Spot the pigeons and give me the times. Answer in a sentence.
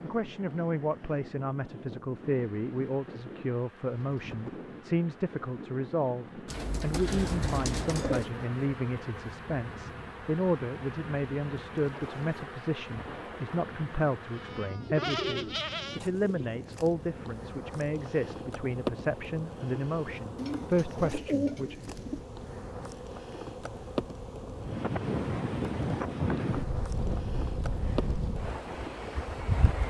The pigeons can be heard from 6.5 to 8.3 s, from 14.8 to 16.5 s and from 20.4 to 22.2 s.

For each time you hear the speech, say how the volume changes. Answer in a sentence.
The speech can be heard from 0.0 to 21.8 s, at a steady volume.